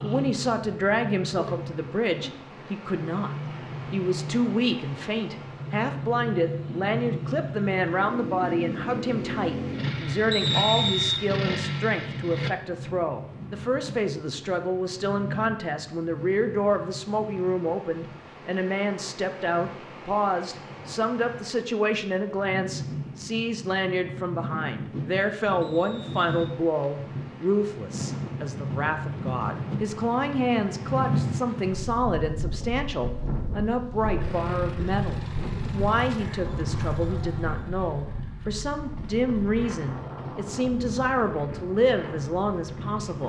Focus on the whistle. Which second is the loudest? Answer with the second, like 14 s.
11 s.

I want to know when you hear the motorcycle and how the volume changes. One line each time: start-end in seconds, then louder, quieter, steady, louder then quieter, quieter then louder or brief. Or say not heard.
0.0-12.6 louder
34.2-43.2 quieter.